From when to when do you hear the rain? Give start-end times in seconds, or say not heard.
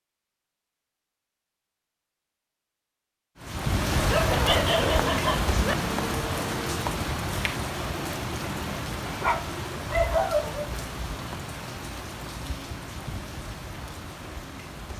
3.4-14.9.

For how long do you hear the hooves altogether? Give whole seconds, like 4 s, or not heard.
not heard.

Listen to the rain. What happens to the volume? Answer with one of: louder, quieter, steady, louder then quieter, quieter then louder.
quieter.